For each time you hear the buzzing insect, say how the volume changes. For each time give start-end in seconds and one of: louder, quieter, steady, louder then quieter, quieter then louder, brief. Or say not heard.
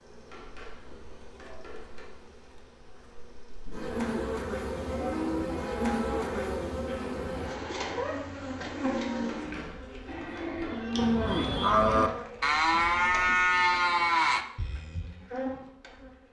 0.0-16.2 louder then quieter.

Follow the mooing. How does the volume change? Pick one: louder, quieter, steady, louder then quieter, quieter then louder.
louder.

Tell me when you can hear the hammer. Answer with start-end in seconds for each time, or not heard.
0.3-2.1, 9.2-10.9.